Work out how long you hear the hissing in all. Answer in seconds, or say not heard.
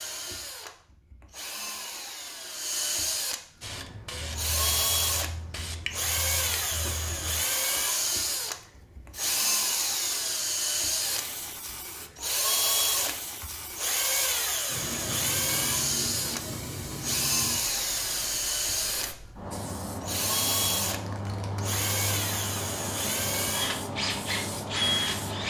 22 s.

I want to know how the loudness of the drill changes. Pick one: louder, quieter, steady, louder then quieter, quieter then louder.
steady.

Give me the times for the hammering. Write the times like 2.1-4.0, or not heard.
not heard.